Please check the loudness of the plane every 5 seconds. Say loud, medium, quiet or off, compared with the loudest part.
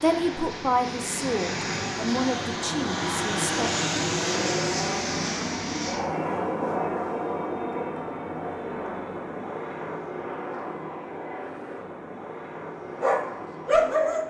loud, loud, medium.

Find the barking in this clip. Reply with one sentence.
You can hear the barking from 13.0 to 14.2 s.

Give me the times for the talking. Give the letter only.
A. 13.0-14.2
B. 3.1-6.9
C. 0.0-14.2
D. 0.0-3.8
D.